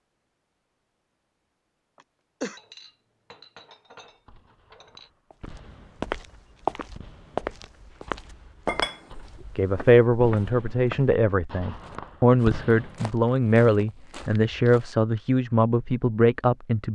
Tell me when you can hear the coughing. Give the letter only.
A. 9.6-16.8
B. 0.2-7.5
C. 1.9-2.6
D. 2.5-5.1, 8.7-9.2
C.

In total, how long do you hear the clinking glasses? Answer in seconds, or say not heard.
3 s.